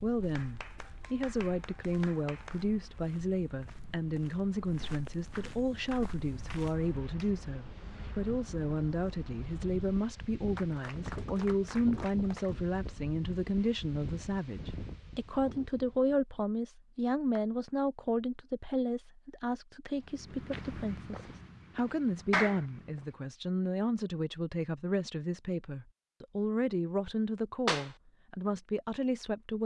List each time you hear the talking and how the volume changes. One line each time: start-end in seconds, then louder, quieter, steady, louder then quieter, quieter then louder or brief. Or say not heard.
0.0-29.6 steady.